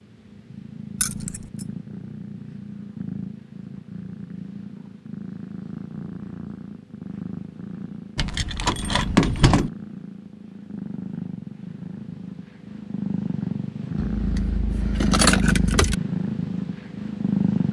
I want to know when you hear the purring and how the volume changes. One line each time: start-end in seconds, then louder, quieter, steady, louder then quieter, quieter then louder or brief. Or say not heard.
0.0-17.6 louder.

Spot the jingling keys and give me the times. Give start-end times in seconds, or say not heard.
1.0-1.6, 8.2-9.7, 13.9-15.9.